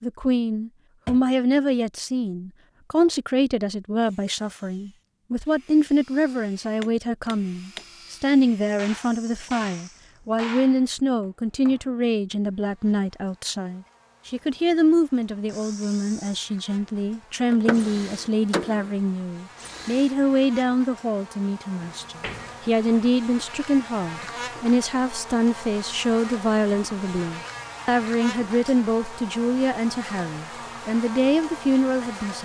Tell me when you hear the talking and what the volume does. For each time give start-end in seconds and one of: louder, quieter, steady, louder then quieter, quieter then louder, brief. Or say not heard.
0.0-32.4 steady.